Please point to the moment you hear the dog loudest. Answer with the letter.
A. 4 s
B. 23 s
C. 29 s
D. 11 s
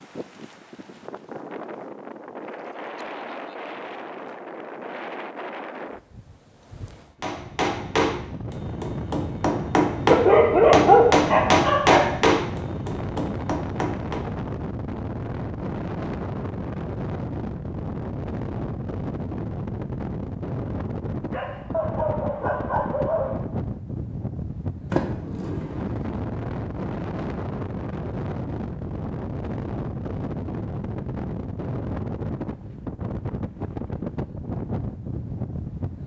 D.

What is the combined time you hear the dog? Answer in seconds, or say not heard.
4 s.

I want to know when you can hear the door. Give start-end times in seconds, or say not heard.
24.9-26.2.